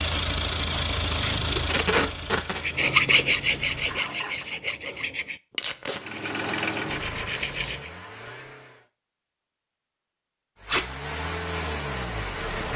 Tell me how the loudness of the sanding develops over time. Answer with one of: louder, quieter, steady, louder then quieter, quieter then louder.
quieter then louder.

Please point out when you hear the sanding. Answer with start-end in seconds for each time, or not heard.
2.5-7.9.